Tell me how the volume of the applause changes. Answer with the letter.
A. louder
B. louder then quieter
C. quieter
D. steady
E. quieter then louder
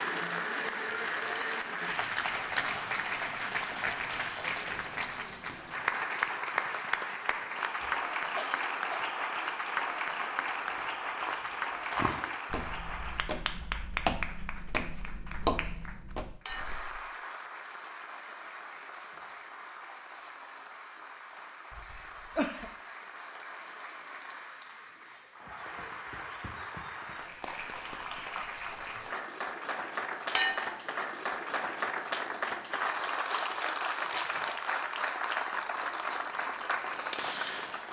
E.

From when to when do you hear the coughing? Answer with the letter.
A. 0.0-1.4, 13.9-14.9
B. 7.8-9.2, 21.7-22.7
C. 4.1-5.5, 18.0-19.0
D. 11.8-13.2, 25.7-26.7
B.